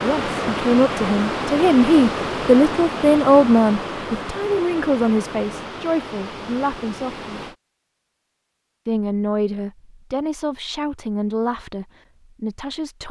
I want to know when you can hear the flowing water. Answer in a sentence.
You can hear the flowing water from 0.0 to 7.5 s.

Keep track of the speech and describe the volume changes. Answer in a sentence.
The volume of the speech goes down.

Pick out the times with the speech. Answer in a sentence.
The speech can be heard from 0.0 to 7.5 s and from 8.8 to 13.0 s.